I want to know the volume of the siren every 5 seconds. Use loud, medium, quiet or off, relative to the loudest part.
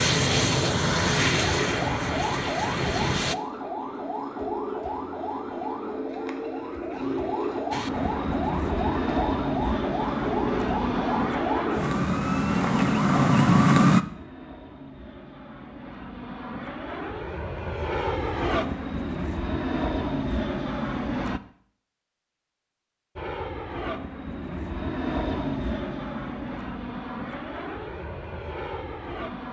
medium, medium, loud, off, off, off.